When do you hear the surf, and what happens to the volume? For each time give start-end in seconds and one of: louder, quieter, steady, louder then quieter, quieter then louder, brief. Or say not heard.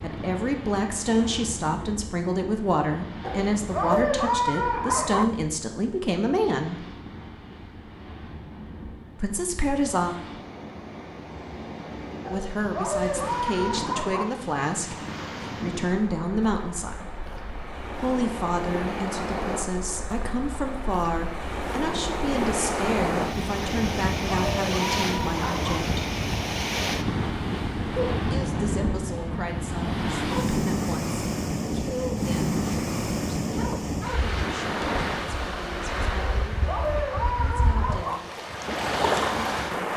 0.0-39.9 louder.